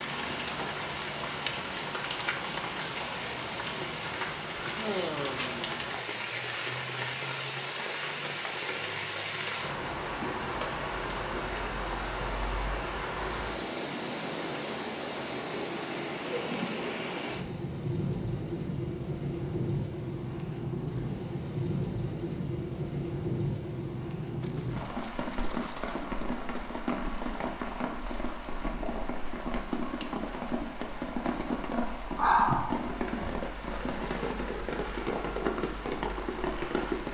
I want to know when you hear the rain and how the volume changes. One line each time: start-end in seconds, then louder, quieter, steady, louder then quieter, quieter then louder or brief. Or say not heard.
0.0-37.1 steady.